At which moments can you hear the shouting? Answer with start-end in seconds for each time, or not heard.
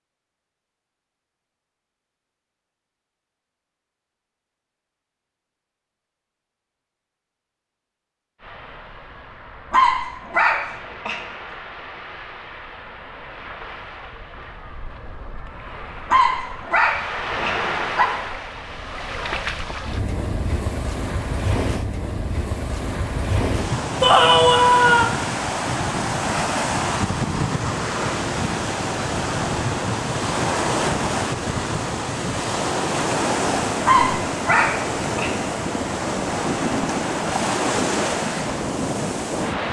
24.0-25.1.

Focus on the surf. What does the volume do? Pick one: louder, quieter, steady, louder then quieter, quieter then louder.
louder.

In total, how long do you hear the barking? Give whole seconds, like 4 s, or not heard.
5 s.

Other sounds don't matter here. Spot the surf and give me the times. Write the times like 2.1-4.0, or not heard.
8.4-39.6.